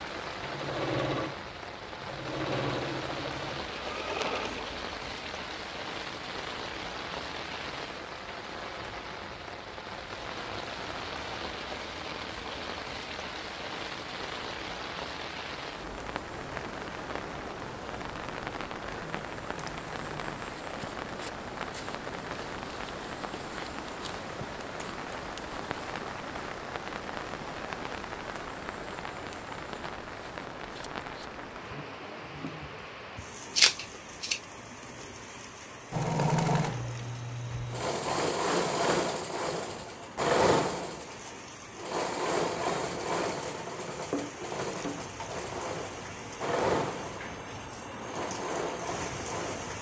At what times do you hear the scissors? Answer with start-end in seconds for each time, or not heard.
33.5-34.4.